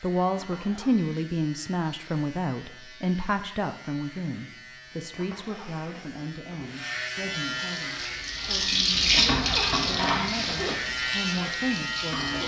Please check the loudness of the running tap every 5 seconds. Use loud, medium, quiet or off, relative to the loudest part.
off, loud, medium.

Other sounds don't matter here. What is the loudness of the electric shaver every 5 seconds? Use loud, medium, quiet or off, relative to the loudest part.
quiet, medium, loud.